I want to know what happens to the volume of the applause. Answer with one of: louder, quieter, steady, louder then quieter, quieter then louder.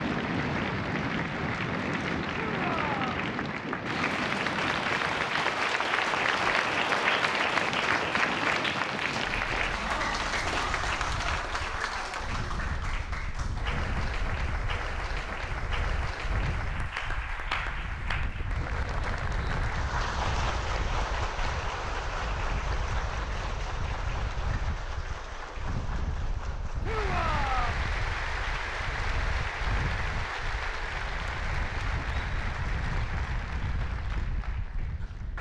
quieter.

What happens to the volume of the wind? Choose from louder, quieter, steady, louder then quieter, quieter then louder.
quieter.